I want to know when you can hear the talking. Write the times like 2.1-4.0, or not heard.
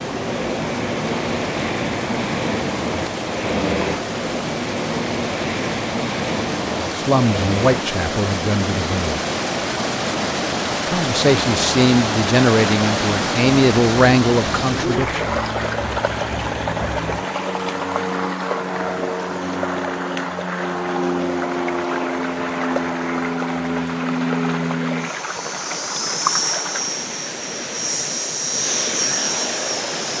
7.0-9.2, 10.8-15.2.